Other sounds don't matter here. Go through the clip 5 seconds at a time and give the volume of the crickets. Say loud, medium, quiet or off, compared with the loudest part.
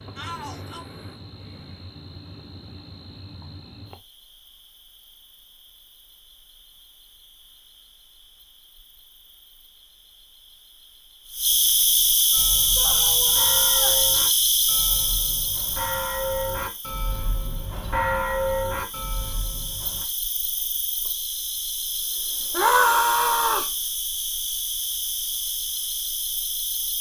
quiet, quiet, loud, quiet, medium, medium.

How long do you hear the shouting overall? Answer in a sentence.
The shouting can be heard for 3 seconds in total.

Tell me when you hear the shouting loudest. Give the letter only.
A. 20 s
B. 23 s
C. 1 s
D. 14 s
B.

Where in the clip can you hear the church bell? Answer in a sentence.
The church bell can be heard from 12.3 to 20.1 s.